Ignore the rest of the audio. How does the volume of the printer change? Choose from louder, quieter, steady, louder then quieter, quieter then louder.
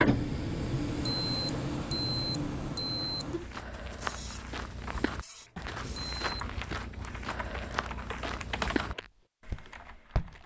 quieter.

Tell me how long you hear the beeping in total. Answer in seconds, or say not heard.
3 s.